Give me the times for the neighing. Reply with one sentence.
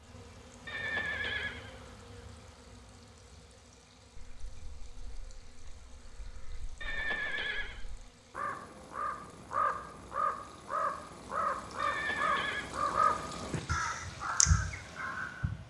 You can hear the neighing from 0.7 to 1.9 s, from 6.8 to 7.8 s and from 11.8 to 12.8 s.